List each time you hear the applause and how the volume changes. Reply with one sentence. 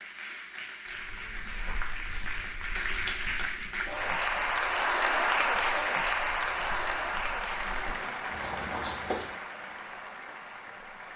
The applause can be heard from 0.0 to 11.1 s, getting louder then quieter.